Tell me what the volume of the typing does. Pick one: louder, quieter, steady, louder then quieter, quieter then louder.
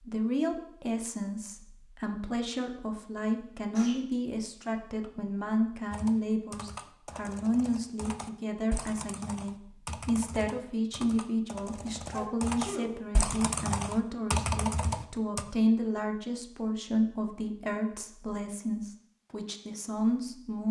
louder.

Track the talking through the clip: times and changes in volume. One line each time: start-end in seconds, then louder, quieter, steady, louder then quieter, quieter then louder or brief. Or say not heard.
0.0-20.6 steady.